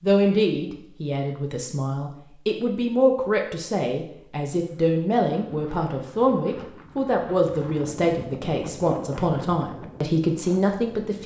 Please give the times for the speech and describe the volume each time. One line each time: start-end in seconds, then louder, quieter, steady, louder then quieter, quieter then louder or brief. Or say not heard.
0.0-11.2 steady.